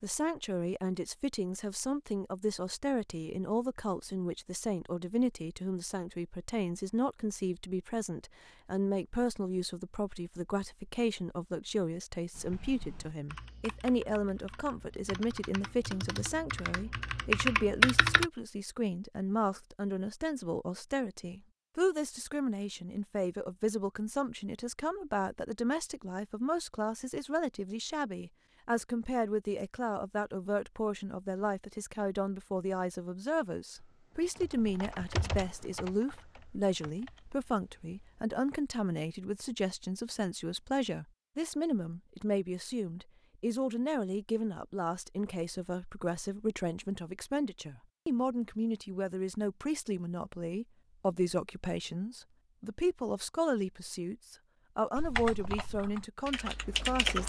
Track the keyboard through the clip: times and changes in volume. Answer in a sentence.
The keyboard can be heard from 12.3 to 18.3 s, getting louder; from 33.8 to 38.2 s, getting louder then quieter; and briefly from 55.0 to 57.2 s.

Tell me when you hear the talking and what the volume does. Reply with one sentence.
The talking can be heard from 0.0 to 57.2 s, at a steady volume.